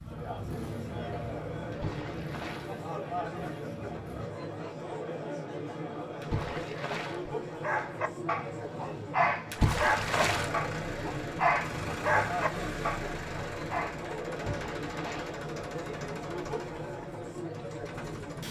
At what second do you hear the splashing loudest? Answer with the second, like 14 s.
10 s.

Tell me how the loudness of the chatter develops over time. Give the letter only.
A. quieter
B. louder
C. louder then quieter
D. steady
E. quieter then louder
D.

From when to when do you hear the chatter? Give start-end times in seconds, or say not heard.
0.0-18.4.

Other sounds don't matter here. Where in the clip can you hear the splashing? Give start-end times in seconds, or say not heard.
1.7-2.7, 6.2-7.2, 9.5-10.5, 14.3-15.3.